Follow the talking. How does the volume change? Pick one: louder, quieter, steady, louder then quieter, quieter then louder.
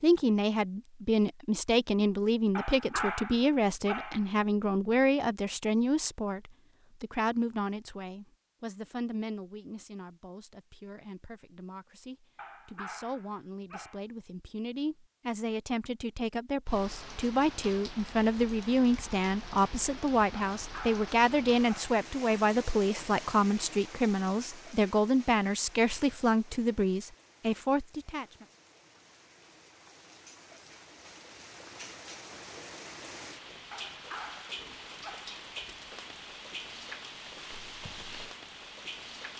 quieter then louder.